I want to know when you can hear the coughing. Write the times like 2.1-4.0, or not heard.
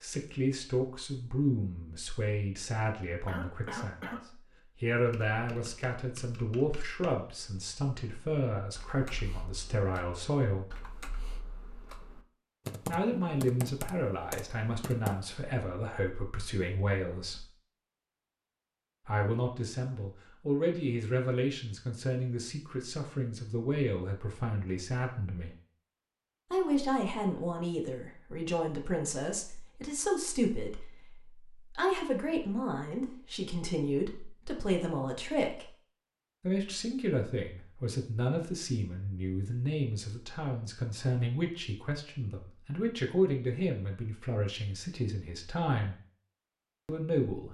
3.2-4.2.